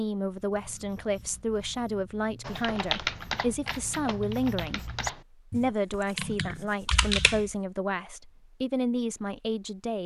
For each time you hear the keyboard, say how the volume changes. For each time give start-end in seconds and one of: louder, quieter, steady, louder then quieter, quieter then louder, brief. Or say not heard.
2.5-7.5 quieter then louder.